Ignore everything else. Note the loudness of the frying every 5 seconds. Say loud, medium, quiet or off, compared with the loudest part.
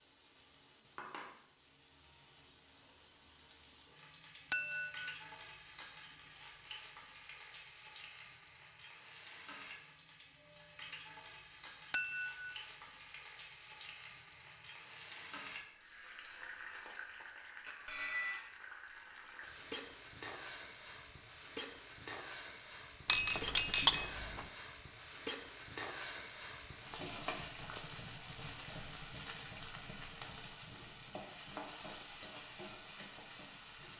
medium, medium, medium, loud, loud, loud, loud.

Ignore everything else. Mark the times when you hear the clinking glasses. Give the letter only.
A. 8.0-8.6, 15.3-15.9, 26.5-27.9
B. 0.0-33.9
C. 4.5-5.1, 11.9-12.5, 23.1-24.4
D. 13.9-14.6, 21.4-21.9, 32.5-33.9
C.